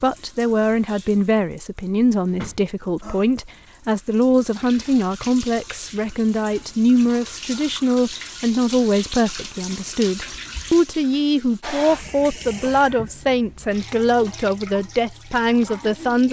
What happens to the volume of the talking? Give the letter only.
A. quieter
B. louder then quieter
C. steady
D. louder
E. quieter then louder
C.